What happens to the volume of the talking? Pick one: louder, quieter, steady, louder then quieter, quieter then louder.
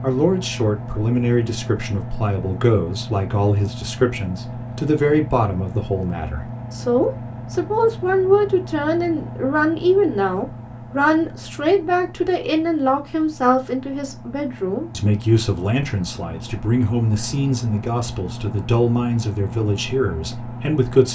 steady.